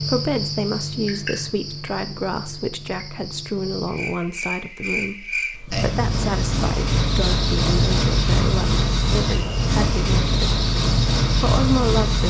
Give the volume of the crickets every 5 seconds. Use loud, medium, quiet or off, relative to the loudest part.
medium, loud, loud.